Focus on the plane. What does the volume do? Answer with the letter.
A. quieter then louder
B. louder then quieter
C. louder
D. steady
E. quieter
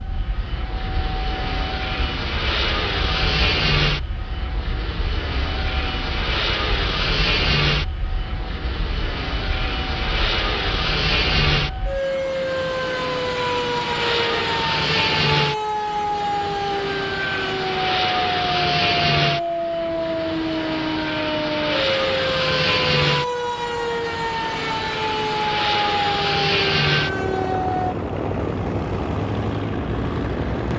D.